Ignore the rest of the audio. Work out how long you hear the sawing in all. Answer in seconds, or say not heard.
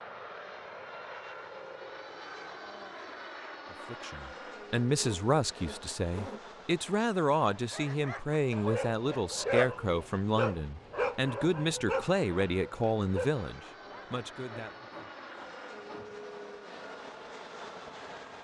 4 s.